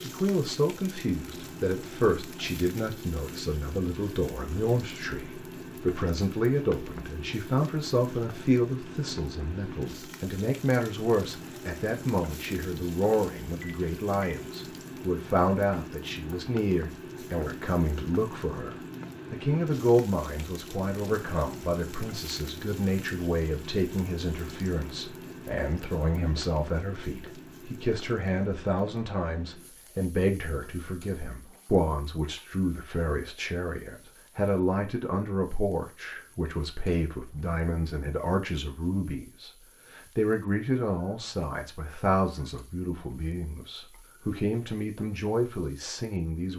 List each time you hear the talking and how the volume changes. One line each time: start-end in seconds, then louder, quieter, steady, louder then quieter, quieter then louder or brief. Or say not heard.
0.0-46.5 steady.